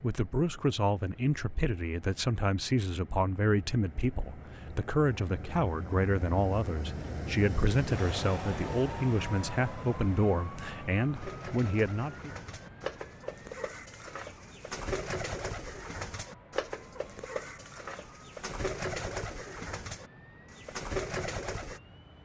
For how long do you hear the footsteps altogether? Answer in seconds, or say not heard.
not heard.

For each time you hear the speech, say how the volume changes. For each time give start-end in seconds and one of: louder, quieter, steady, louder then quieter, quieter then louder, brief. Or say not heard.
0.0-12.3 steady.